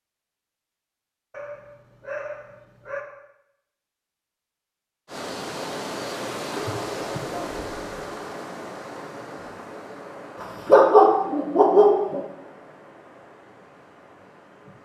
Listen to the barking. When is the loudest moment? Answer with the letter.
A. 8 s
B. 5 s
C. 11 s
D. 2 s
C.